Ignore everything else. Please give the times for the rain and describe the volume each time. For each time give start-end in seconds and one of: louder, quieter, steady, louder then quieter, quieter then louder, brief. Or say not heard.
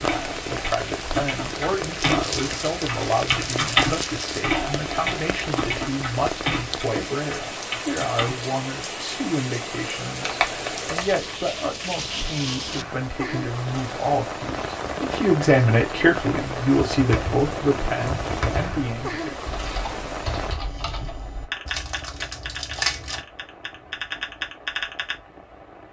0.0-25.8 quieter.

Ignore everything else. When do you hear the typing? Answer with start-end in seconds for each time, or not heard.
0.0-8.4, 16.9-25.1.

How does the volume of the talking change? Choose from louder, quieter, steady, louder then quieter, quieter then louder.
louder.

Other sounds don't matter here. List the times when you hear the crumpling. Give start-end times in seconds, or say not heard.
1.9-4.5, 10.2-11.3, 21.6-23.2.